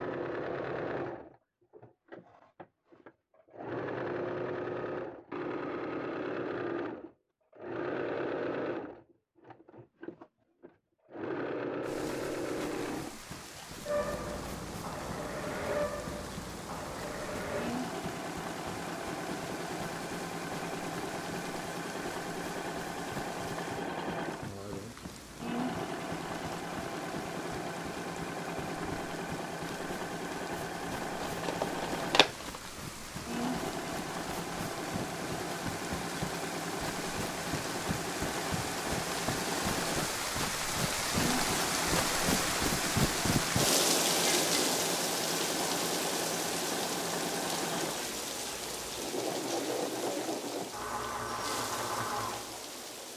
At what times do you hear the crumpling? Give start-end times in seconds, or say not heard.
31.2-32.6.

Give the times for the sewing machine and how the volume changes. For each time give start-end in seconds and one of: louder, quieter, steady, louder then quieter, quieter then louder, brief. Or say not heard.
0.0-53.1 steady.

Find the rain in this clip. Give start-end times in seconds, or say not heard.
11.8-53.1.